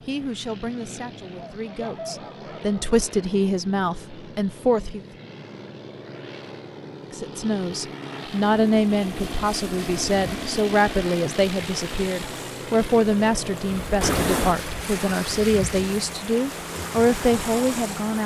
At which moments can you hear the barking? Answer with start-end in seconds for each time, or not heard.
1.4-2.8.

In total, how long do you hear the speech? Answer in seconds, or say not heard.
16 s.